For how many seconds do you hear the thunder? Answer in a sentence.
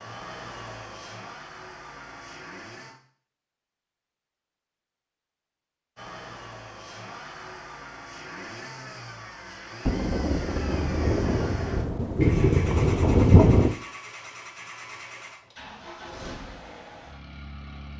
The thunder can be heard for 4 seconds in total.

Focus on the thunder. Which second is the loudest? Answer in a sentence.
The loudest moment of the thunder is at 13 seconds.